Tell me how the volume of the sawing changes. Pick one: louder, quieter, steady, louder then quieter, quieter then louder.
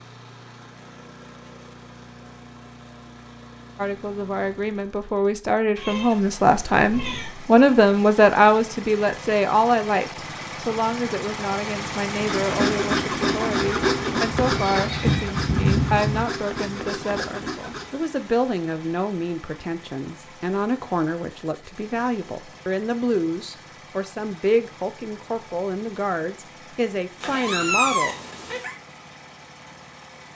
quieter.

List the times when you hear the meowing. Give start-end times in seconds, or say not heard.
5.8-7.4, 14.3-16.2, 27.2-28.8.